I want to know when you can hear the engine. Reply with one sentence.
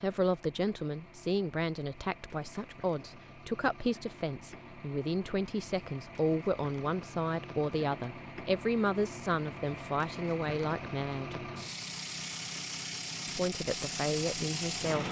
You can hear the engine from 0.0 to 15.0 s.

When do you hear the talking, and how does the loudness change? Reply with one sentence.
You can hear the talking from 0.0 to 11.5 s, at a steady volume; and briefly from 13.2 to 15.0 s.